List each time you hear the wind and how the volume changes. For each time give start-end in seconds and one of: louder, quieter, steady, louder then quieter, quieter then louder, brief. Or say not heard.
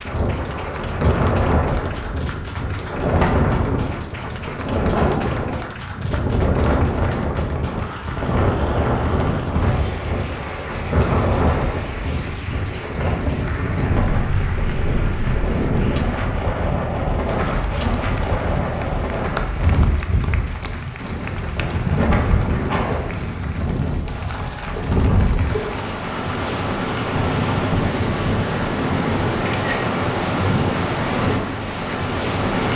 0.0-32.7 steady.